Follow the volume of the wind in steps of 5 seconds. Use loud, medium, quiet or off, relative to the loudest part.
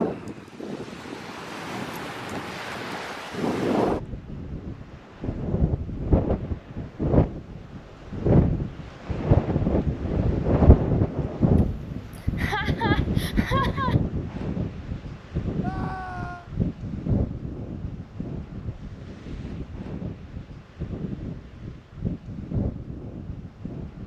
medium, loud, loud, medium, medium.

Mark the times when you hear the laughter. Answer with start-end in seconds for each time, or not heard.
11.6-13.9.